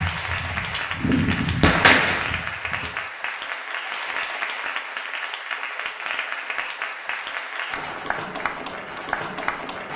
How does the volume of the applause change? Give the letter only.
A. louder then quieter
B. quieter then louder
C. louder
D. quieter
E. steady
E.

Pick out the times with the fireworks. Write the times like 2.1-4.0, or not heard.
0.0-2.9.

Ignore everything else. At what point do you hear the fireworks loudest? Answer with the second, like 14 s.
2 s.